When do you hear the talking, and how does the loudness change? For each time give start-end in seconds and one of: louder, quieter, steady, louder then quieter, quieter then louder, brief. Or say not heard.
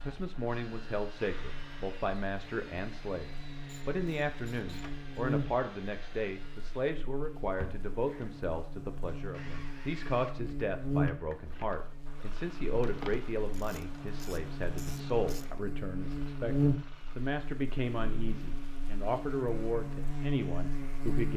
0.0-21.3 steady.